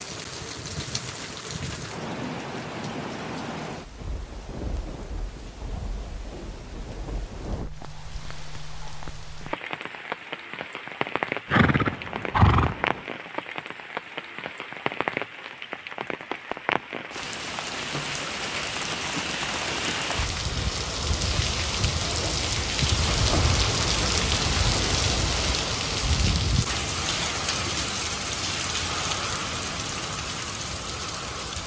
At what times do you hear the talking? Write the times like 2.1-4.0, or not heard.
not heard.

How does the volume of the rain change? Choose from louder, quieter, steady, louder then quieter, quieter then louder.
louder.